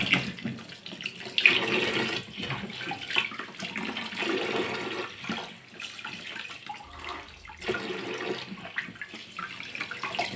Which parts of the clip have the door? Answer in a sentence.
You can't hear the door here.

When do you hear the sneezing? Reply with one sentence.
You can hear the sneezing from 2.4 to 3.0 s and from 6.8 to 7.8 s.